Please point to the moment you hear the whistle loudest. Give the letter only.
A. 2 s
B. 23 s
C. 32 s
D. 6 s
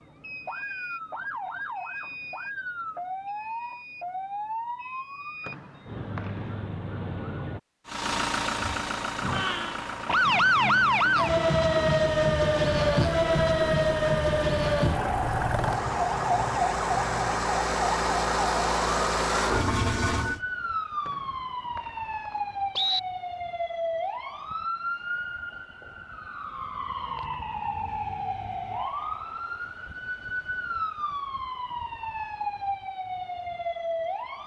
B.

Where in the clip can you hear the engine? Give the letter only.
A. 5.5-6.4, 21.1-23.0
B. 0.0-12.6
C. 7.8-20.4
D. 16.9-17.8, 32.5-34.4
C.